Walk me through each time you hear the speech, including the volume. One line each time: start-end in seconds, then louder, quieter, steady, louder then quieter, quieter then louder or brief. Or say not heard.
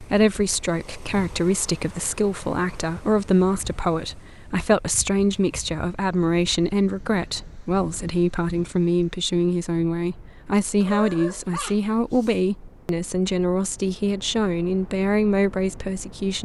0.0-16.3 steady.